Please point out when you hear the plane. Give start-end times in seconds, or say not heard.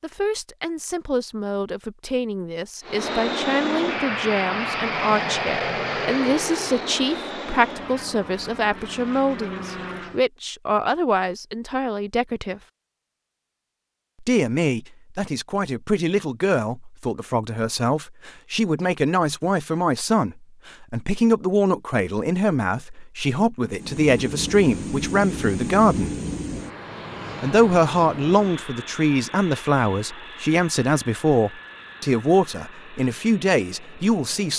2.8-10.2, 23.7-34.5.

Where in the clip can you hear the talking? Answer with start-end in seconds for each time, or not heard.
0.0-12.6, 14.2-26.1, 27.4-34.5.